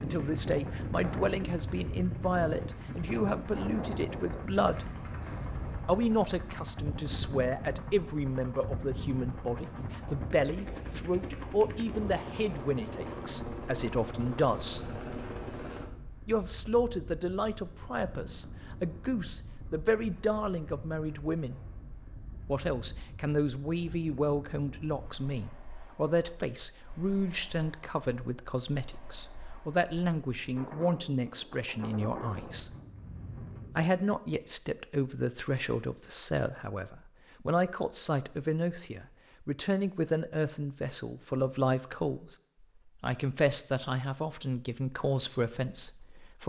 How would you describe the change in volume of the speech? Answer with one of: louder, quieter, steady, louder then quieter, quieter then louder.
steady.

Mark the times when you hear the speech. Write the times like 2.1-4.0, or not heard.
0.0-4.8, 5.8-14.8, 16.2-21.6, 22.4-32.8, 33.8-42.4, 43.0-46.4.